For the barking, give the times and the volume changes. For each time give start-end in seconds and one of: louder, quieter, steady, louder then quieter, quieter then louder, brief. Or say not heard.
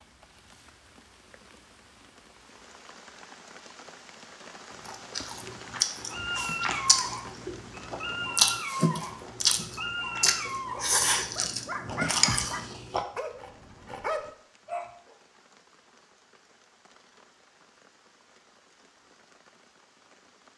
6.1-15.2 steady.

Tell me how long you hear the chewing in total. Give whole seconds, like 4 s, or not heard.
8 s.